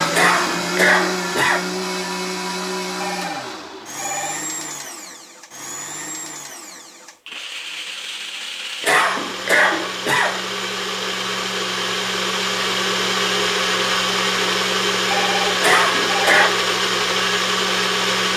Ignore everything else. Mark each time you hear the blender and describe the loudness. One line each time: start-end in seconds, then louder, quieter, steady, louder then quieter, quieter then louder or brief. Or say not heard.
0.0-18.3 quieter then louder.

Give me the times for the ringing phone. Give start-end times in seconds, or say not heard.
3.0-4.4, 15.1-16.4.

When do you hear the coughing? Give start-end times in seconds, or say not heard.
0.1-1.6, 8.8-10.4, 15.6-16.6.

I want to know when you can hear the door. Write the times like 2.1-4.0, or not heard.
not heard.